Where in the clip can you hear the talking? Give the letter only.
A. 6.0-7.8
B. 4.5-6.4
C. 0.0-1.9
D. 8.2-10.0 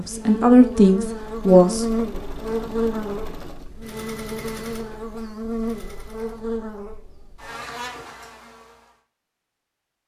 C.